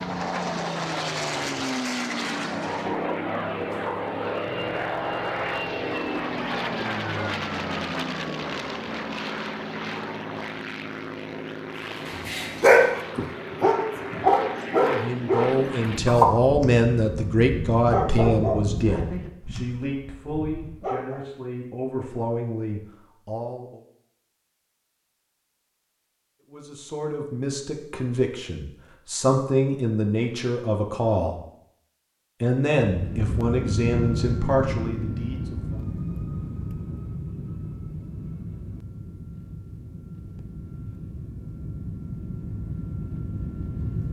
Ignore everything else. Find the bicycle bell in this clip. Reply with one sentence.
The bicycle bell can't be heard in this clip.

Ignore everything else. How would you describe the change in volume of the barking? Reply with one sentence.
The loudness of the barking goes down.